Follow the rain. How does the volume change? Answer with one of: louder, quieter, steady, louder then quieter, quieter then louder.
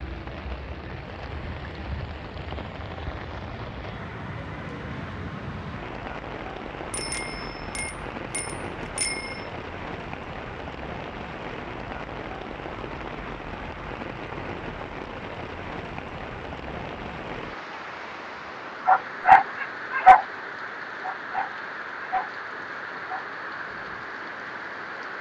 steady.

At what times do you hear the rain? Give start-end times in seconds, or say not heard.
0.0-25.1.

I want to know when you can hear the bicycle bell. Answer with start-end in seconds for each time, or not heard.
6.9-9.4.